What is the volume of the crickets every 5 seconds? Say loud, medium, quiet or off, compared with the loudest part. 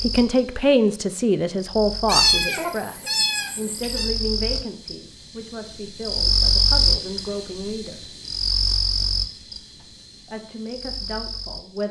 medium, loud, quiet.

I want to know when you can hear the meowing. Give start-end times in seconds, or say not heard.
2.0-4.1.